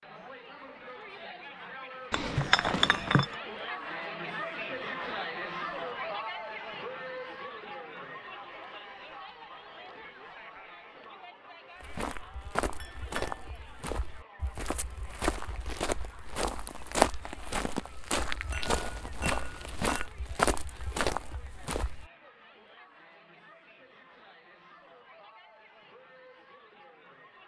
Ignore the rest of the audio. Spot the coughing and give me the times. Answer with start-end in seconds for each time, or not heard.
not heard.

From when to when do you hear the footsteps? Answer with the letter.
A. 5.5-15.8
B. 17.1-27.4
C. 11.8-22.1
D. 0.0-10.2
C.